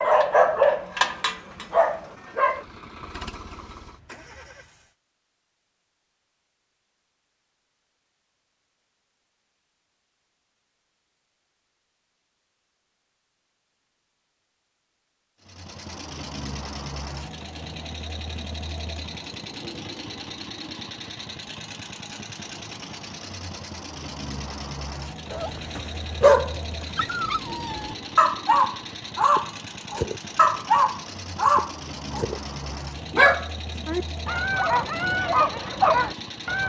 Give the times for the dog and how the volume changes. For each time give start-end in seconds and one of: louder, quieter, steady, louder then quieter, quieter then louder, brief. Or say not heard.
0.0-2.6 brief
25.3-36.6 steady.